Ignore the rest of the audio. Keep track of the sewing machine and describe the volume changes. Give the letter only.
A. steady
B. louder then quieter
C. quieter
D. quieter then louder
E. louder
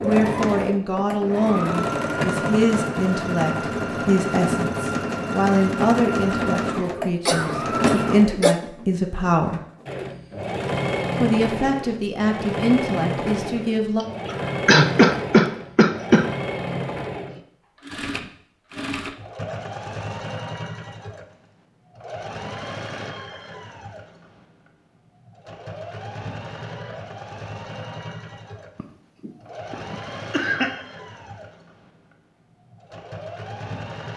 C.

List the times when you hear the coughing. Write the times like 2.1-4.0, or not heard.
7.2-8.6, 14.0-16.3, 28.8-30.7.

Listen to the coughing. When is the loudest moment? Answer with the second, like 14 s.
15 s.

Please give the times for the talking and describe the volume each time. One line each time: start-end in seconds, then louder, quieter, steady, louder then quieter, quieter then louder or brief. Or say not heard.
0.0-9.6 steady
11.2-14.1 brief.